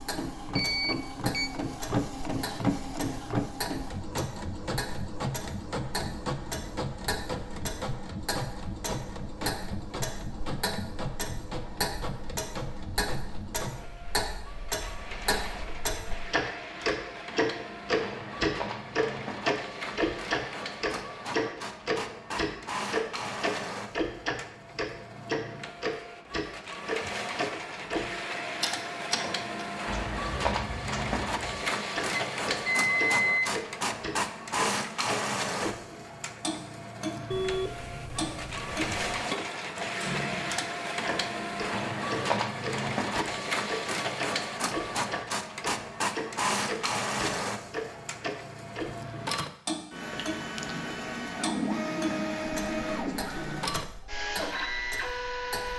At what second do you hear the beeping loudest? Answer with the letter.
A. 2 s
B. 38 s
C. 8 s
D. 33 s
D.